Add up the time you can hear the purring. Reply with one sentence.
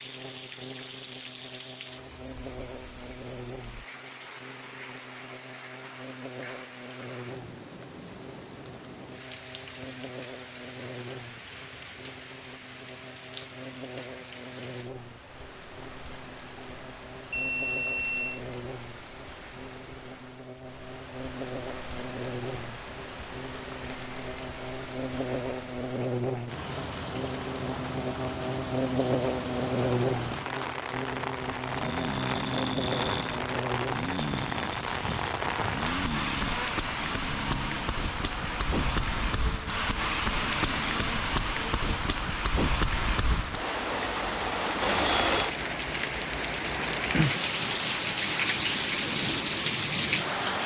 The purring can't be heard in this clip.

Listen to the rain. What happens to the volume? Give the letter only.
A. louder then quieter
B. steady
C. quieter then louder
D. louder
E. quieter
D.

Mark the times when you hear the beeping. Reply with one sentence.
You can hear the beeping from 17.3 to 18.4 s.